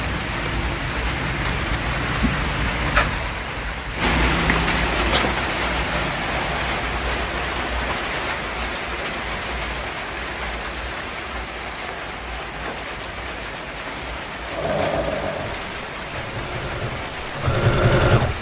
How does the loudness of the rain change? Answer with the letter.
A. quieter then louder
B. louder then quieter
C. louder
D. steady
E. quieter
E.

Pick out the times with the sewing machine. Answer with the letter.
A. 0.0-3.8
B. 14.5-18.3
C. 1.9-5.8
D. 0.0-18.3
B.